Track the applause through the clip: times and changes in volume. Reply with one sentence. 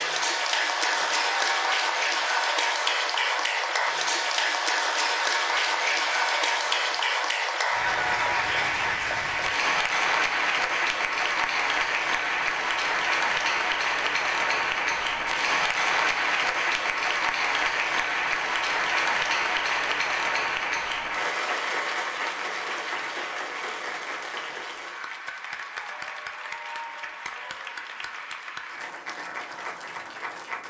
The applause can be heard from 0.0 to 30.6 s, getting quieter.